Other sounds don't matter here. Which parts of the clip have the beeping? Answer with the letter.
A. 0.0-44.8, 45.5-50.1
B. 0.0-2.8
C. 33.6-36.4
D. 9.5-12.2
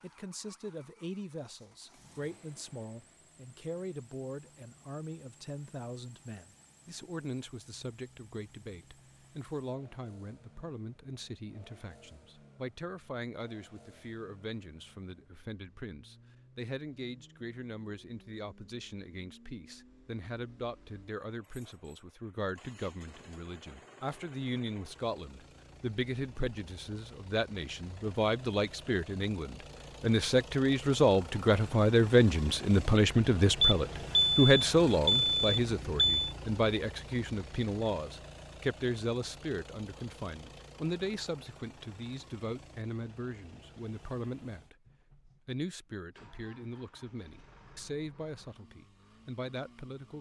C.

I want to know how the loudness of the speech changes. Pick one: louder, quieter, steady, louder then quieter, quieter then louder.
louder then quieter.